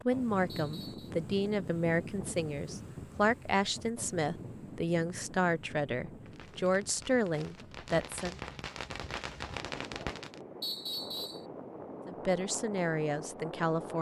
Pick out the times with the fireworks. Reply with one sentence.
You can hear the fireworks from 6.2 to 10.4 s.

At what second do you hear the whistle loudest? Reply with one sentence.
The loudest moment of the whistle is at 11 seconds.